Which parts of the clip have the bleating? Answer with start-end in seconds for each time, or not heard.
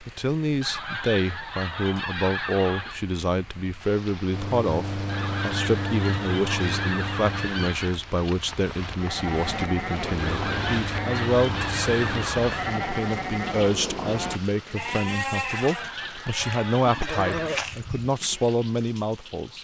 8.9-18.5.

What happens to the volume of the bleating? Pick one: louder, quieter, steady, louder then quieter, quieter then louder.
steady.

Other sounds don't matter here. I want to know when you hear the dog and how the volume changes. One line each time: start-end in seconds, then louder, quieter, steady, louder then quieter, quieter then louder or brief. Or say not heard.
not heard.